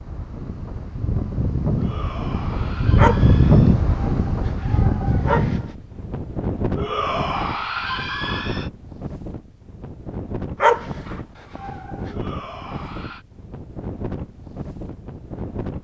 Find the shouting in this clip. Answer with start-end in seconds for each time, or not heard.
1.8-3.8, 6.8-8.7, 12.1-13.2.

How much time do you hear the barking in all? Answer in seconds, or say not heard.
4 s.